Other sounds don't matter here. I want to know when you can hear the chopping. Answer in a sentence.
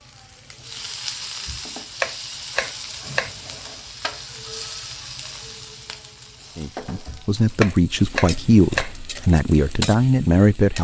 The chopping can be heard from 1.4 to 3.4 s and from 7.0 to 8.9 s.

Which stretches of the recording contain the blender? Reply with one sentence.
The blender can't be heard in this clip.